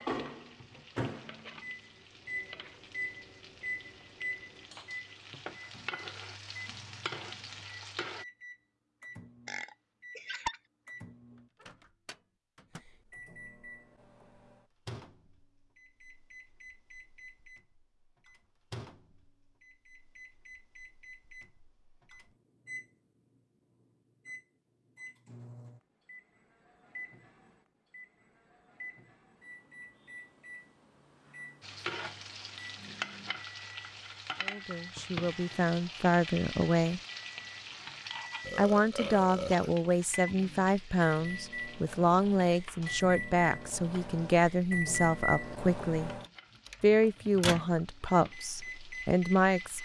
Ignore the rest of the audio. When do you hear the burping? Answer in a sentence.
You can hear the burping from 9.4 to 10.6 s and from 38.4 to 39.7 s.